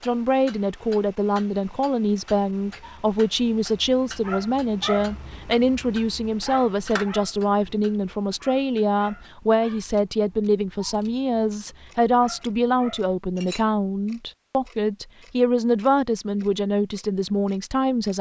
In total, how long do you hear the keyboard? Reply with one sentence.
You can't hear the keyboard here.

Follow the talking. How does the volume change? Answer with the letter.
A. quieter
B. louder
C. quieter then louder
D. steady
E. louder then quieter
D.